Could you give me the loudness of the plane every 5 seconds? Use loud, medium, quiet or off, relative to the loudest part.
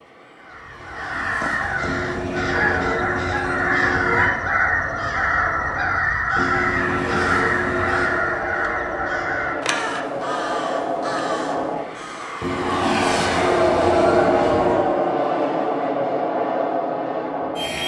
quiet, medium, loud, loud.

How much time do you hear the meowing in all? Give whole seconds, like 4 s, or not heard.
7 s.